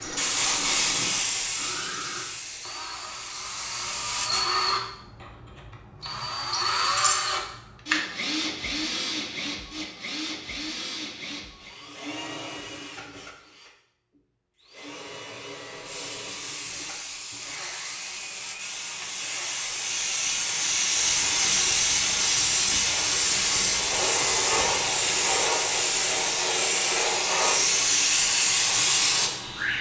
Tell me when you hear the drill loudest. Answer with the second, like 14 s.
7 s.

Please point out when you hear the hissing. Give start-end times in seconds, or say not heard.
0.0-4.5, 15.8-29.7.